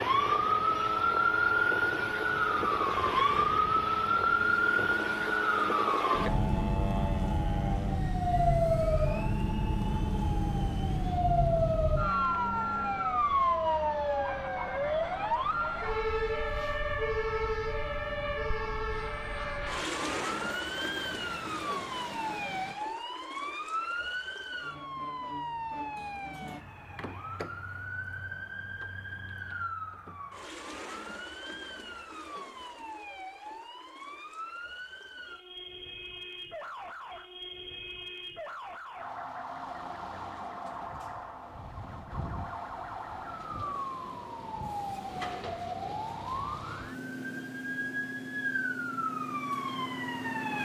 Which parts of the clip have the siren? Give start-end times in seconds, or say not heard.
0.0-50.6.